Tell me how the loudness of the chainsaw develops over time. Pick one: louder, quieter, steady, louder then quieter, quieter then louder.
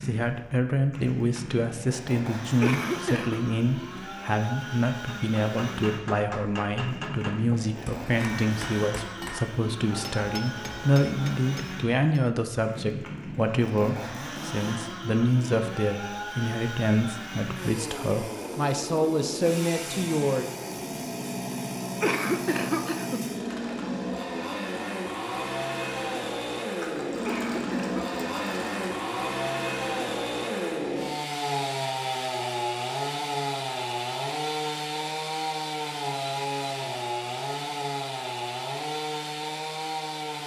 louder.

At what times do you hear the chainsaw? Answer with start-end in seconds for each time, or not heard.
0.0-40.4.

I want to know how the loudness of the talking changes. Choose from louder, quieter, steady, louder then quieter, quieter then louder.
steady.